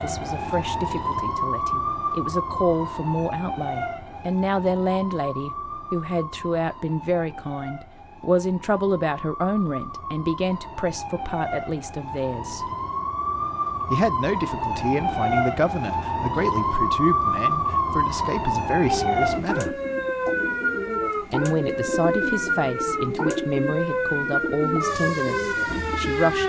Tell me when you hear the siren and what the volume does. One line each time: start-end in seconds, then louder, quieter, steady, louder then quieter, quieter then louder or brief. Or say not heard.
0.0-26.4 quieter then louder.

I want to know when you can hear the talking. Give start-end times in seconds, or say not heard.
0.0-12.7, 13.9-19.8, 21.3-26.4.